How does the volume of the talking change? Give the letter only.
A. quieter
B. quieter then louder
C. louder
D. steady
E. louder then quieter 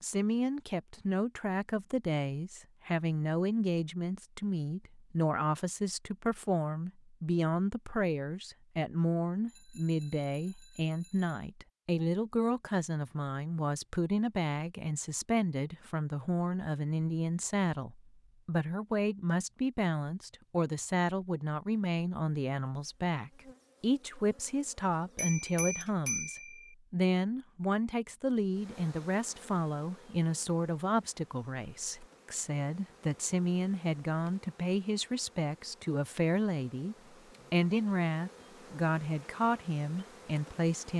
D.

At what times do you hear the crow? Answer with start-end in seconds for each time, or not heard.
not heard.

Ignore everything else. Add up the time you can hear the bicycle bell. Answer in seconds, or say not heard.
4 s.